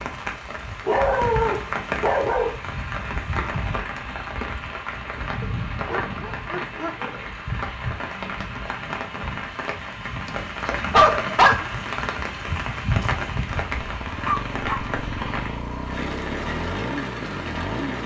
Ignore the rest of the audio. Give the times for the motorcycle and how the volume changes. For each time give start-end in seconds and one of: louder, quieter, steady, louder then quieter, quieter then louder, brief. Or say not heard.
13.7-18.0 steady.